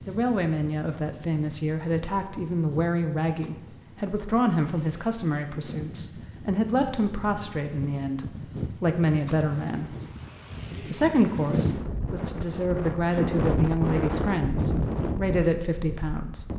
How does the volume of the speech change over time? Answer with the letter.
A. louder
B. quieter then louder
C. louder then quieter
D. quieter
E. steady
E.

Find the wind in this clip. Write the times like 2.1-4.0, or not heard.
0.0-16.5.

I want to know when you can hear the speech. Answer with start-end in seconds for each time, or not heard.
0.1-9.9, 10.8-16.5.